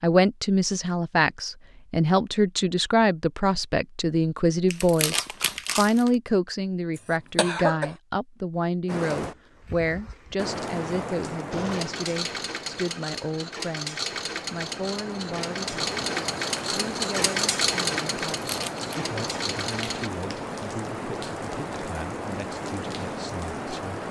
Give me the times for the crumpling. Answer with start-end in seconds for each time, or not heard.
4.7-6.1, 18.4-19.0.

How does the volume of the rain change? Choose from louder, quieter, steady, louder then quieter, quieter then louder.
quieter then louder.